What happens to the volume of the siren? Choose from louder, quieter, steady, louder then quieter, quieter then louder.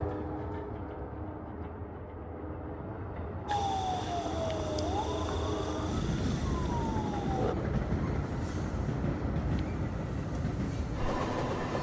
quieter then louder.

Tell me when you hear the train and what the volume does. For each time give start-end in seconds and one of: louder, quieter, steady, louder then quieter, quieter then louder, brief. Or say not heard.
0.0-11.7 louder.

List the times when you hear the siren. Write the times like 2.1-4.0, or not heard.
3.5-7.5.